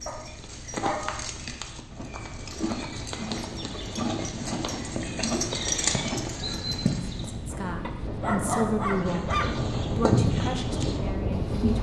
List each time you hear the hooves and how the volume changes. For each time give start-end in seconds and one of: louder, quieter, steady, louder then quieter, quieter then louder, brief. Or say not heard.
0.0-7.3 louder
8.9-11.7 brief.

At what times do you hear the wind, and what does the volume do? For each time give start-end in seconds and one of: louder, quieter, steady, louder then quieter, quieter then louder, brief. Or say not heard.
0.0-11.7 louder.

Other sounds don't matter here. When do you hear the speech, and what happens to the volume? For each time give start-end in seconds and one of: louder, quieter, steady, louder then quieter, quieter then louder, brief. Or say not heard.
7.2-11.7 louder then quieter.